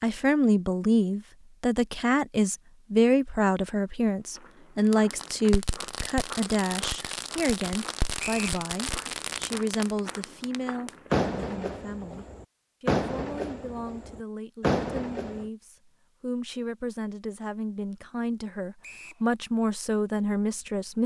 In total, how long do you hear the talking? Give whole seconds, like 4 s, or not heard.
21 s.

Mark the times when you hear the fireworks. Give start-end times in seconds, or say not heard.
4.9-15.4.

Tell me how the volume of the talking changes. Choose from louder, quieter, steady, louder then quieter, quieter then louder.
quieter then louder.